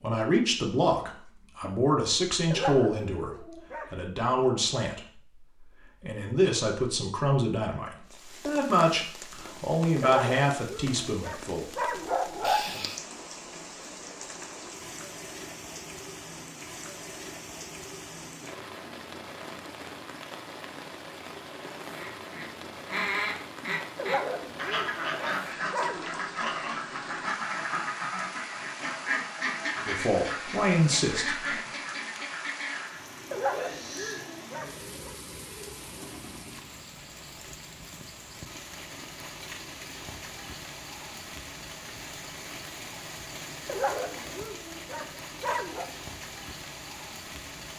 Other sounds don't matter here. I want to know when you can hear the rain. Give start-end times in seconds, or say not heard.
8.1-47.7.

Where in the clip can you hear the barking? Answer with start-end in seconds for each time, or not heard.
2.5-4.0, 10.0-12.9, 23.9-26.1, 33.3-35.1, 43.6-45.9.